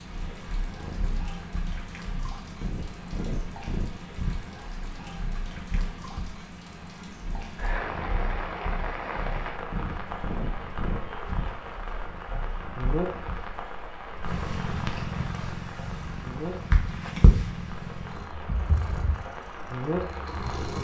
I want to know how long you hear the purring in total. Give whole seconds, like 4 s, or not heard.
21 s.